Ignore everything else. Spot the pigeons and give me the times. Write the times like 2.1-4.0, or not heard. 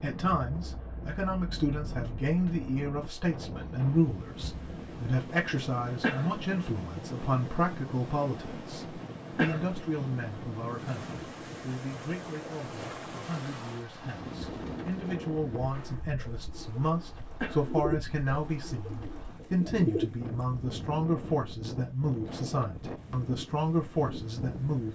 14.2-20.1.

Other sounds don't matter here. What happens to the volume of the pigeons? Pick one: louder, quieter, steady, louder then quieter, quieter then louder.
louder then quieter.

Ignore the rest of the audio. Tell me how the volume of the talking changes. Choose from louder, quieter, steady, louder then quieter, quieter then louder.
quieter then louder.